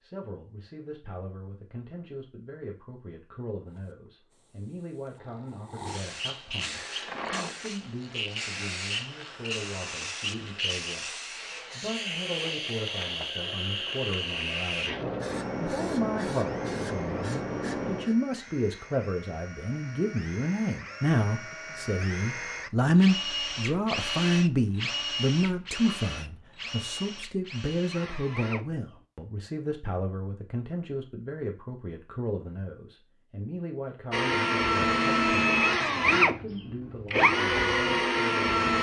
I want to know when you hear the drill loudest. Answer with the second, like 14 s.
36 s.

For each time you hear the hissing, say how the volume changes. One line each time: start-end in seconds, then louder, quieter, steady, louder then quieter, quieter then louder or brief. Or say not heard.
3.6-18.1 louder.